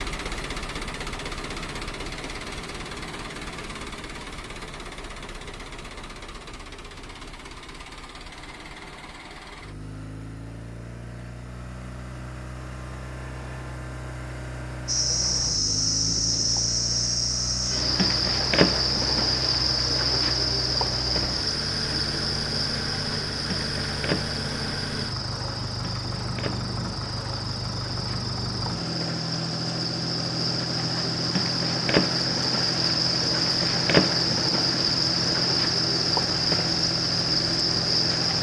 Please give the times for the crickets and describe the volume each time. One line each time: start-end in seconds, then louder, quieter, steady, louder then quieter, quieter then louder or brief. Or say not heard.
14.8-38.3 quieter then louder.